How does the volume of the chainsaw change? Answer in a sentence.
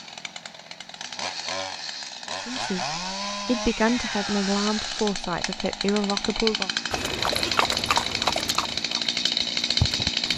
The volume of the chainsaw goes up.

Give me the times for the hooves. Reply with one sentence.
You can hear the hooves from 6.9 to 10.3 s.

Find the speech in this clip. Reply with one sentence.
You can hear the speech from 2.5 to 6.7 s.